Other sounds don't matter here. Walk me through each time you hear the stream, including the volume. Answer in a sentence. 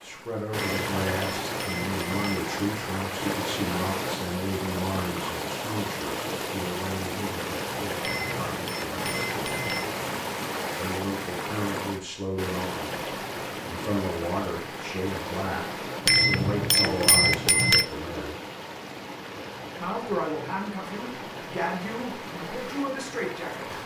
You can hear the stream from 0.0 to 23.8 s, getting quieter.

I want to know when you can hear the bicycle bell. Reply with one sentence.
You can hear the bicycle bell from 0.6 to 2.5 s, from 8.0 to 9.9 s and from 16.1 to 17.9 s.